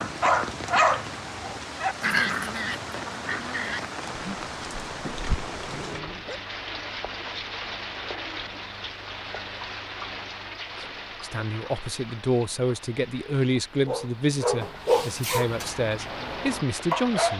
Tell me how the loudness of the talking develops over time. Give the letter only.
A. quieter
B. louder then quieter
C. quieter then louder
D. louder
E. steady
E.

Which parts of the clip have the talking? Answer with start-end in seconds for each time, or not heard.
11.2-17.3.